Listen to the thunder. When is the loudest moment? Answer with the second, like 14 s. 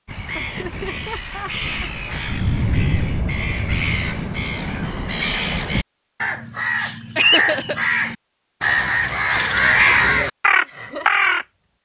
3 s.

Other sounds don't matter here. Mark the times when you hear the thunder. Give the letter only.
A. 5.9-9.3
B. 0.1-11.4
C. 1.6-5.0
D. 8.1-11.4
C.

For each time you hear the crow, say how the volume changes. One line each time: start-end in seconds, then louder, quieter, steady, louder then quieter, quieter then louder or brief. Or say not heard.
0.1-11.4 louder.